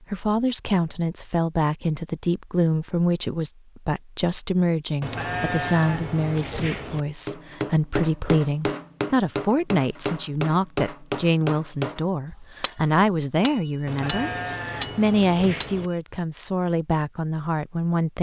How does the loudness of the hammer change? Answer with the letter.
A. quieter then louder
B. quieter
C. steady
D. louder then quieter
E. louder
A.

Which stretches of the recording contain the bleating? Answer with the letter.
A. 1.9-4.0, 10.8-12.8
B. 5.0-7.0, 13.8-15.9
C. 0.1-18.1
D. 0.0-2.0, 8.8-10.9
B.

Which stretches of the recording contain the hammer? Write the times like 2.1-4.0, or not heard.
7.2-16.1.